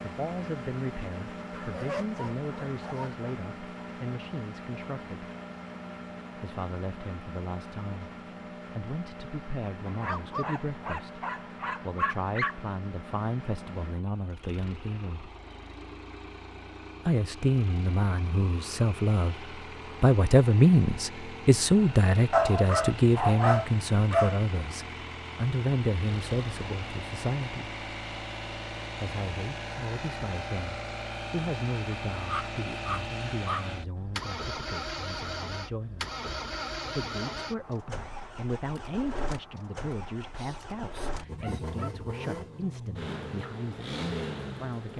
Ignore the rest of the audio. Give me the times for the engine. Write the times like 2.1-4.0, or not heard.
0.0-44.9.